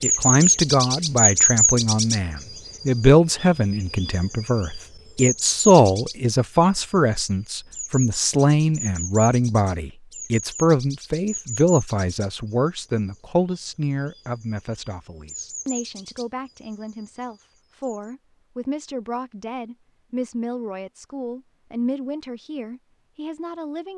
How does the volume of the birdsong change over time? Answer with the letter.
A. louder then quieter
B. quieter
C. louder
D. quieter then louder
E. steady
B.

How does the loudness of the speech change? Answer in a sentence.
The volume of the speech goes down.